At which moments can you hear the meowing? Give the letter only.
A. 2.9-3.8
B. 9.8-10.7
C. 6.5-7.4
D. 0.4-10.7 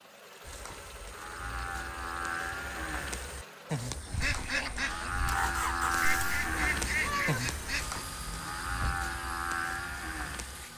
C.